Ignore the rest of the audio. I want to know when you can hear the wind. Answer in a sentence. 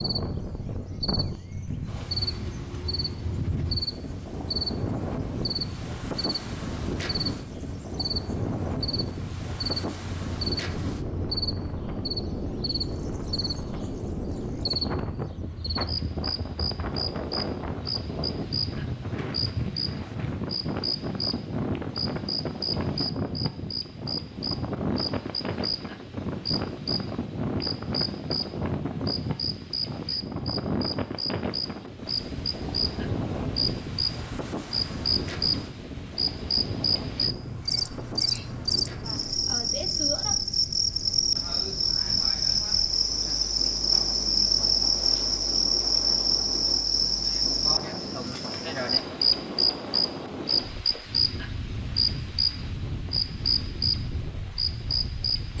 The wind can be heard from 0.0 to 55.5 s.